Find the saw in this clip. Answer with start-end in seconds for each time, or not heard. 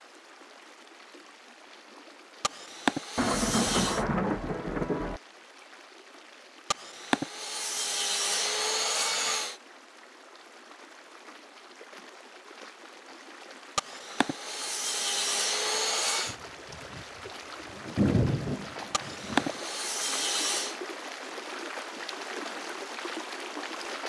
2.4-4.0, 6.7-9.6, 13.8-16.4, 18.9-20.8.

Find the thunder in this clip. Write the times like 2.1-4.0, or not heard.
3.1-5.2, 16.2-17.1, 17.7-19.4.